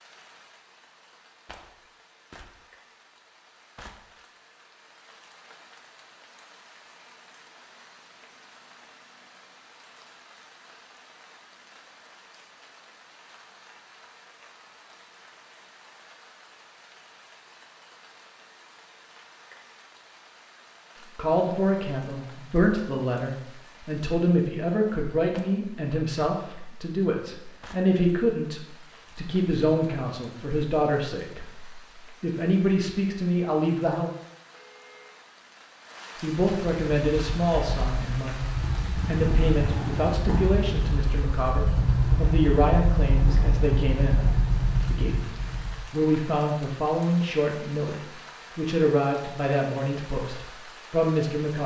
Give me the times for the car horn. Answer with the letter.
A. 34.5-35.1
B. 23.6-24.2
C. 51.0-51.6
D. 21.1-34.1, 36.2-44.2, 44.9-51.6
A.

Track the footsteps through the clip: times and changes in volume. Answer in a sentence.
You can't hear the footsteps here.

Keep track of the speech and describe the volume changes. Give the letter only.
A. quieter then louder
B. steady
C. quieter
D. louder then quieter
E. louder
B.